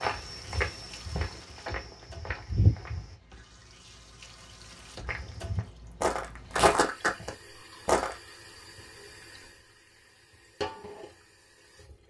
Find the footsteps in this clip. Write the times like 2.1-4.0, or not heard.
0.0-3.1, 5.0-8.2.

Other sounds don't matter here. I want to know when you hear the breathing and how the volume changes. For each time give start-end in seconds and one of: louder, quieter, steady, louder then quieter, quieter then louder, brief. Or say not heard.
not heard.